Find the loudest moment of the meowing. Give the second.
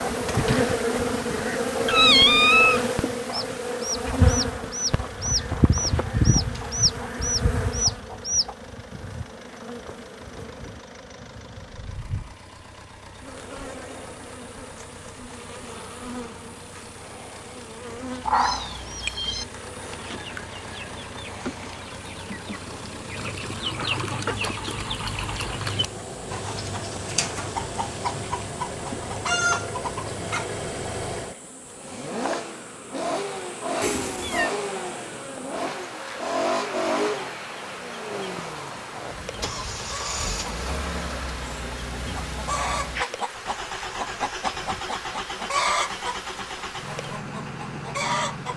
2 s.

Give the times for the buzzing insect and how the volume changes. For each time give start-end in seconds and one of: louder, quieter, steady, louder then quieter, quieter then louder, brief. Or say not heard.
0.0-48.5 quieter.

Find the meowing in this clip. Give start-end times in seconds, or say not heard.
1.9-2.9, 18.2-19.4, 33.8-34.5.